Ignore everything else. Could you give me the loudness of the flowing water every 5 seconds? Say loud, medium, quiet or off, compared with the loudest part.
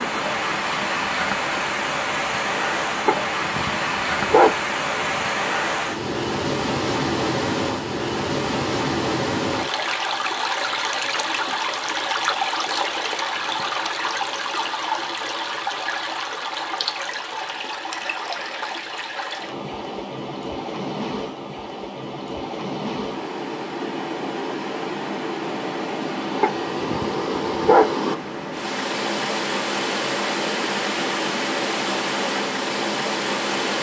loud, loud, loud, medium, medium, loud, loud.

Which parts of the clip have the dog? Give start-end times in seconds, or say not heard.
3.0-5.2, 26.4-27.9.